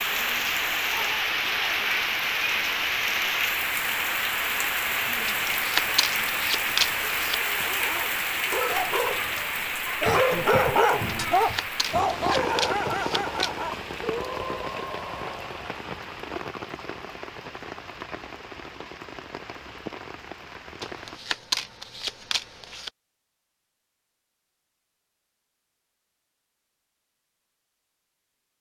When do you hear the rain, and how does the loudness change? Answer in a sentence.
The rain can be heard from 0.0 to 21.2 s, getting quieter.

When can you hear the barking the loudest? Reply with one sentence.
The loudest moment of the barking is at 11 seconds.